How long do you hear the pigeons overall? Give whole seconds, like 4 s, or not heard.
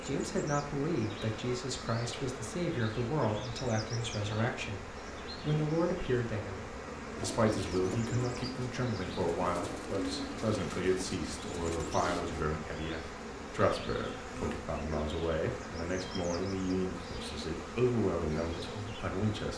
5 s.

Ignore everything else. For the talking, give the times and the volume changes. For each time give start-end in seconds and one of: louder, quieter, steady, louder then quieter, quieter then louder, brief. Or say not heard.
0.0-19.5 steady.